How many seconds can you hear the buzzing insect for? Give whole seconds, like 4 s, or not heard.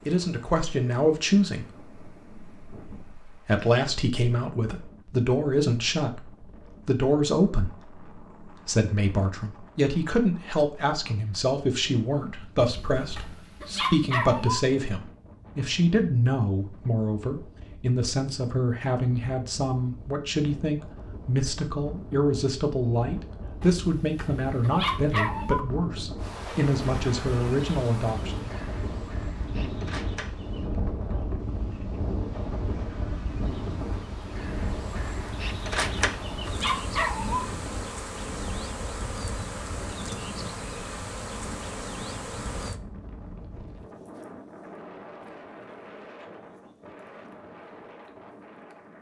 17 s.